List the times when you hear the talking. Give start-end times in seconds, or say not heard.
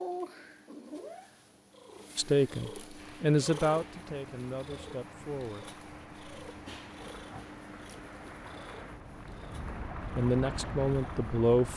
2.1-5.7, 10.1-11.7.